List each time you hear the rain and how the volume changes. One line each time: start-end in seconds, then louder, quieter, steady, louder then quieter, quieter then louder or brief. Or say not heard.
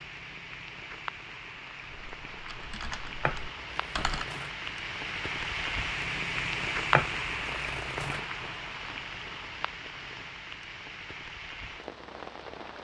0.0-12.7 louder then quieter.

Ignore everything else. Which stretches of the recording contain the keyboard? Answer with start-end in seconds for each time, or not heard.
1.9-4.2.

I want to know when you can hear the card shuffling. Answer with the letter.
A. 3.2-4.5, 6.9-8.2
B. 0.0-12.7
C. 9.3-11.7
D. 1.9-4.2
A.